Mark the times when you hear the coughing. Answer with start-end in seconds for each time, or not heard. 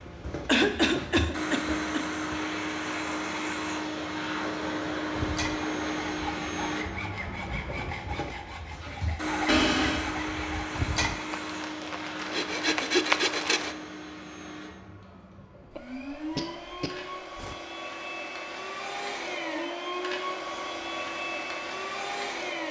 0.1-2.0, 9.4-10.2, 15.7-17.6.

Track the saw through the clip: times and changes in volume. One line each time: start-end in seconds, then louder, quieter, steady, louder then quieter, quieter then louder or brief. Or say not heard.
5.1-13.8 louder.